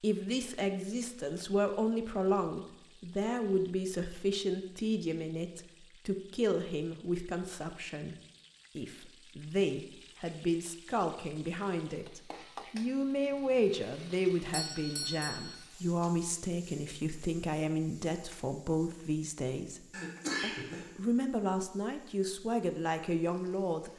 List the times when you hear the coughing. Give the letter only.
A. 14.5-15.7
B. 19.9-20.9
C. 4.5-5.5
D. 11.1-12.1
B.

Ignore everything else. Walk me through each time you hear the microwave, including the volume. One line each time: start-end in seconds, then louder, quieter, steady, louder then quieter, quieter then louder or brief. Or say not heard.
not heard.